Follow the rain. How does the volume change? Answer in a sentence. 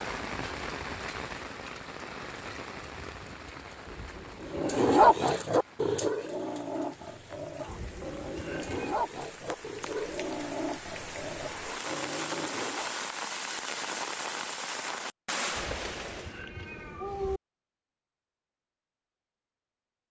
The loudness of the rain goes down, then up.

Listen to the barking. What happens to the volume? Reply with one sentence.
The volume of the barking goes down.